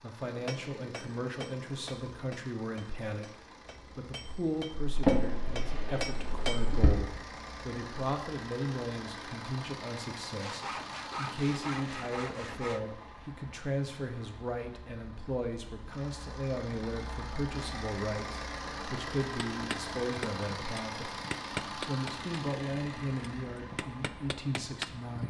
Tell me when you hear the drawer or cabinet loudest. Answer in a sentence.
The loudest moment of the drawer or cabinet is at 5 seconds.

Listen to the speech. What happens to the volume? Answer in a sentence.
The loudness of the speech stays about the same.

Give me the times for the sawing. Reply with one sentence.
You can hear the sawing from 10.3 to 12.8 s.